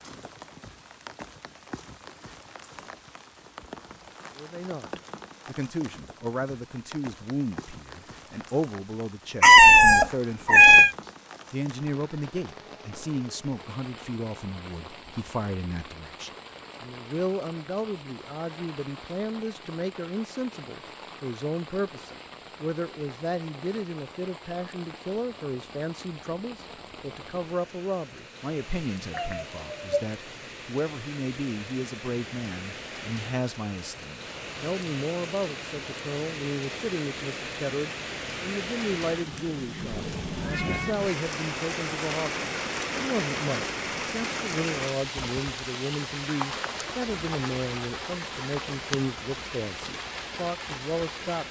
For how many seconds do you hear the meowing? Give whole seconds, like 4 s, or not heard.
3 s.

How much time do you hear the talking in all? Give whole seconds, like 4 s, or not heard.
47 s.